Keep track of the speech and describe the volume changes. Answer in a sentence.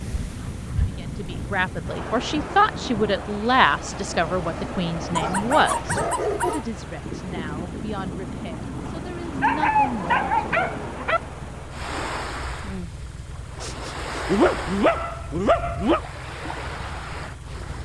The volume of the speech goes down.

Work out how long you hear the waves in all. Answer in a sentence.
The waves can be heard for 18 seconds in total.